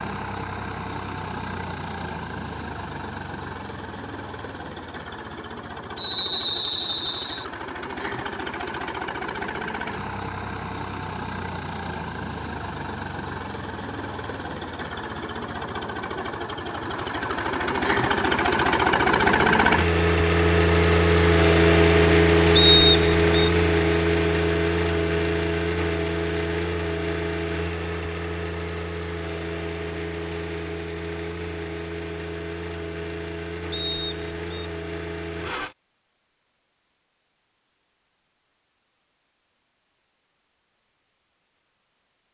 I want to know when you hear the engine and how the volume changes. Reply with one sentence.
You can hear the engine from 0.0 to 35.8 s, getting louder then quieter.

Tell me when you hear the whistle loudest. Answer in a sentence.
The loudest moment of the whistle is at 23 seconds.